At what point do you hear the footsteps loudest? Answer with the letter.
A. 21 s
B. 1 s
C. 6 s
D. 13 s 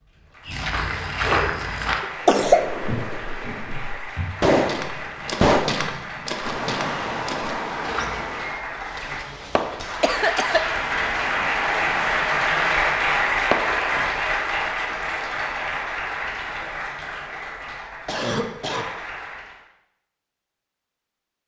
B.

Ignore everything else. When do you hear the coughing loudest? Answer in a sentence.
The loudest moment of the coughing is at 2 seconds.